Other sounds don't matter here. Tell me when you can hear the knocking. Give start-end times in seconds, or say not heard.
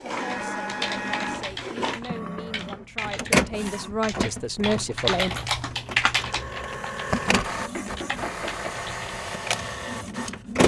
1.7-3.6, 7.7-8.8.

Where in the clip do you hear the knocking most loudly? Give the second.
8 s.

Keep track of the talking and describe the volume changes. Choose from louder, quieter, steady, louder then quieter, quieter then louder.
louder.